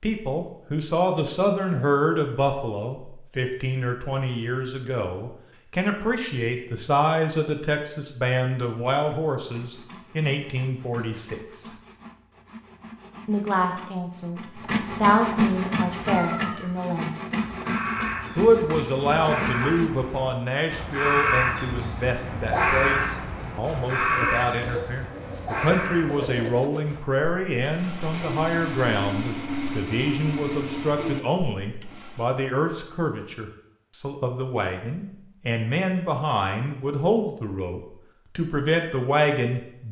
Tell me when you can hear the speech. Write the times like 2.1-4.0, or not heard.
0.0-11.7, 13.2-17.2, 18.4-39.8.